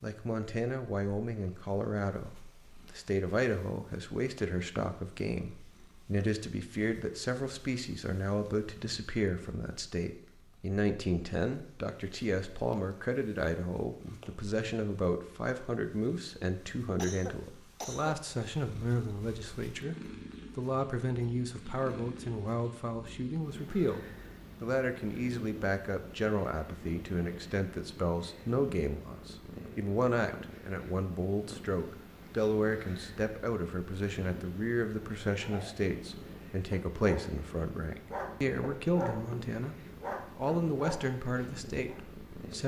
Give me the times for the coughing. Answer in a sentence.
You can hear the coughing from 16.9 to 18.2 s.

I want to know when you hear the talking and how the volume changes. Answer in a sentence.
The talking can be heard from 0.0 to 42.6 s, at a steady volume.